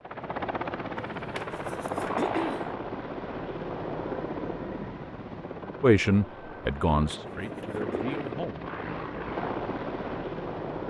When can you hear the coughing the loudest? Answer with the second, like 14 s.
2 s.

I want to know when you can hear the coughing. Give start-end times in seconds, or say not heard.
0.9-2.6, 6.7-8.2.